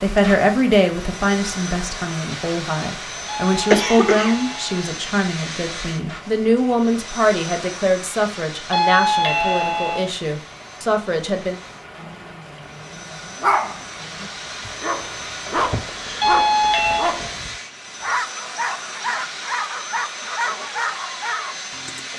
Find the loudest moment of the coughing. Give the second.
4 s.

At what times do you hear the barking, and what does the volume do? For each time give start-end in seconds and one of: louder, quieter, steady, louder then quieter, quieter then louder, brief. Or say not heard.
11.9-22.1 steady.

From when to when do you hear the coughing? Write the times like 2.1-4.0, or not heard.
3.7-4.3, 15.7-16.3.